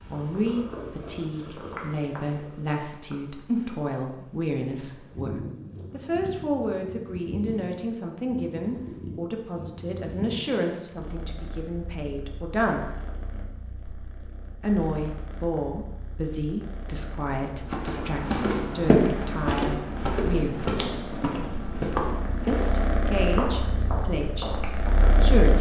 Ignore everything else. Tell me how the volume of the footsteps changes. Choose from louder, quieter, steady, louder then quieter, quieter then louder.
quieter.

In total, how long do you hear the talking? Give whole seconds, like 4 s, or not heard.
22 s.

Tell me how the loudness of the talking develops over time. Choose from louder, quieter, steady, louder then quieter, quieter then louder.
steady.